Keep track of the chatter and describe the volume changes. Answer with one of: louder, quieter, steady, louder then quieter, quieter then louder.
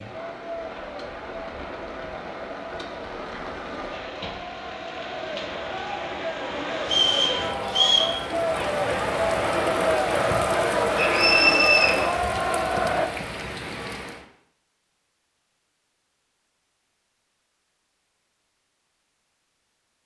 louder.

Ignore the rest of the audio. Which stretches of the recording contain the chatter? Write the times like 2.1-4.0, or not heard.
0.0-13.1.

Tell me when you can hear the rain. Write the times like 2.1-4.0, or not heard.
0.0-14.2.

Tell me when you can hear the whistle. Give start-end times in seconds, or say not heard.
6.8-8.2, 10.9-11.9.